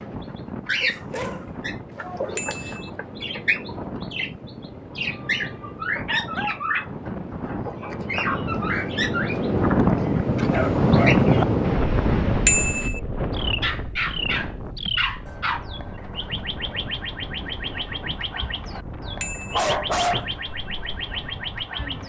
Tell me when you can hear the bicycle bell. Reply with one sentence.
You can hear the bicycle bell from 2.4 to 2.9 s, from 12.4 to 13.0 s and from 19.2 to 19.6 s.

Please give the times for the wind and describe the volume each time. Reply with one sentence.
You can hear the wind from 0.0 to 22.0 s, getting louder then quieter.